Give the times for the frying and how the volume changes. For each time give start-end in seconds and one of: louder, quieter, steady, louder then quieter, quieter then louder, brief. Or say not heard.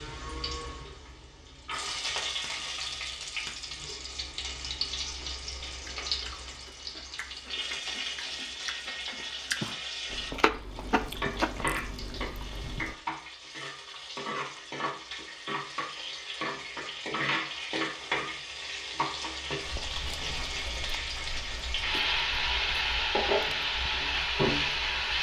0.0-25.1 louder.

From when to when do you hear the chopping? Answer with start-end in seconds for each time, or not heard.
10.3-11.5.